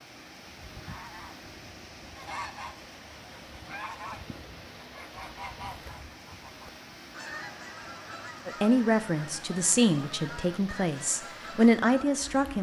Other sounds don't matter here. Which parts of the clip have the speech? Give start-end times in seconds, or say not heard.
8.4-12.5.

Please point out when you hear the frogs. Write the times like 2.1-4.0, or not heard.
not heard.